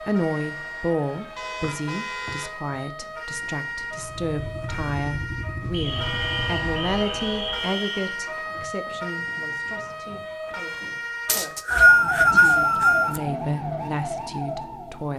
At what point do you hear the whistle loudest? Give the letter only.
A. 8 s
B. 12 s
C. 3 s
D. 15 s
B.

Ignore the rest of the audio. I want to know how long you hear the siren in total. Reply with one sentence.
The siren can be heard for 15 seconds in total.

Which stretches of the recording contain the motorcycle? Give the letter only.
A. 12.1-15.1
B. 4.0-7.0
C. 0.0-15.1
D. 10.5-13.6
B.